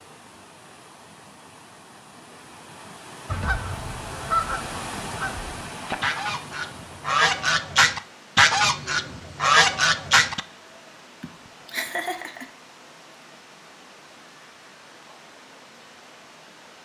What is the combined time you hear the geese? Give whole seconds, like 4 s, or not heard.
7 s.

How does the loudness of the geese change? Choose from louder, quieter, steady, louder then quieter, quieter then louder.
louder.